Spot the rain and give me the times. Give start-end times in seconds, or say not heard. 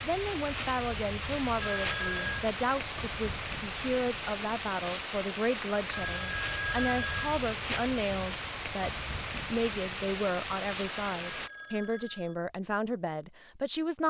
0.0-11.5.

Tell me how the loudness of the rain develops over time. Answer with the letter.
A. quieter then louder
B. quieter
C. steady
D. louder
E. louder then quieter
C.